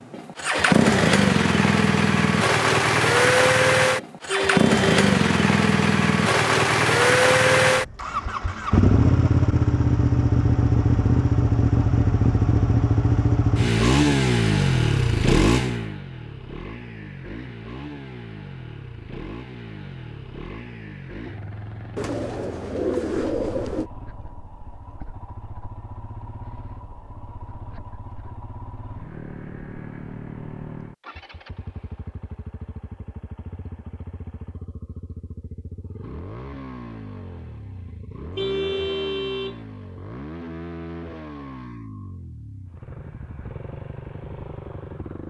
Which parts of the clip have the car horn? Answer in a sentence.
The car horn can be heard from 4.2 to 5.2 s and from 38.4 to 39.5 s.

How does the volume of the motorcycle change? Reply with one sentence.
The volume of the motorcycle goes down.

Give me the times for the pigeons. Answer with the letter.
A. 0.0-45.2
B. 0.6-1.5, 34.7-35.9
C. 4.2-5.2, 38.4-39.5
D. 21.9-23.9
D.